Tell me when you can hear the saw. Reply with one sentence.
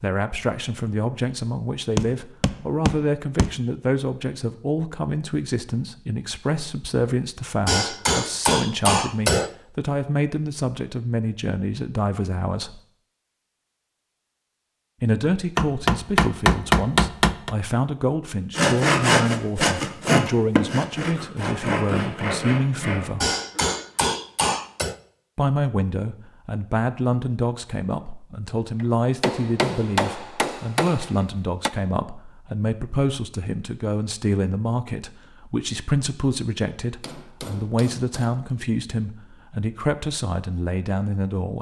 You can hear the saw from 18.6 to 24.1 s.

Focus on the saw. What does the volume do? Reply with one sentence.
The loudness of the saw goes down.